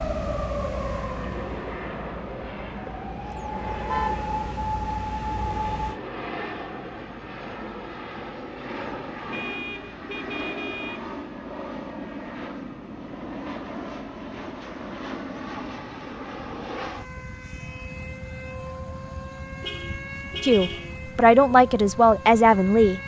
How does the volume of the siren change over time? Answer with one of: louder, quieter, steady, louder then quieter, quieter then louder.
quieter then louder.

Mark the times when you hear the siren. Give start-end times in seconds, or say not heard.
0.0-6.0.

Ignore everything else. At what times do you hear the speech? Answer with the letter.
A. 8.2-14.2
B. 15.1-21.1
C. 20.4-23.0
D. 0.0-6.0
C.